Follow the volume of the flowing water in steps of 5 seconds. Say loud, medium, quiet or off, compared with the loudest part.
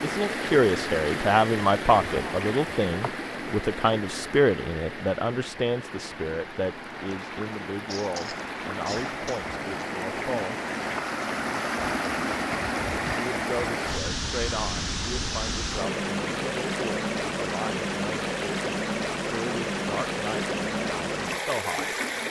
loud, medium, loud, loud, loud.